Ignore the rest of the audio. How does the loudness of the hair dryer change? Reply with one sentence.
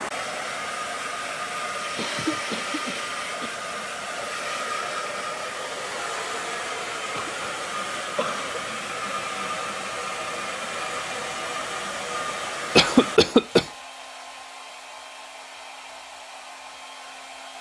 The loudness of the hair dryer goes down.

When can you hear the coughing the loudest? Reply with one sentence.
The volume of the coughing peaks at 13 seconds.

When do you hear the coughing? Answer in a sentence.
The coughing can be heard from 1.9 to 3.5 s, from 7.1 to 7.5 s, from 8.2 to 8.6 s and from 12.8 to 13.7 s.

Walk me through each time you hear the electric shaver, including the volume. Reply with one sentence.
The electric shaver can't be heard in this clip.